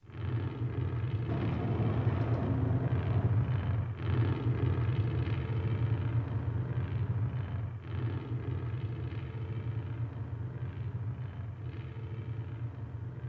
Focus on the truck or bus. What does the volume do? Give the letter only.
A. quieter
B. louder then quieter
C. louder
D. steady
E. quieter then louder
A.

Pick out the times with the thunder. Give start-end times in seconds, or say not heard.
1.2-3.3.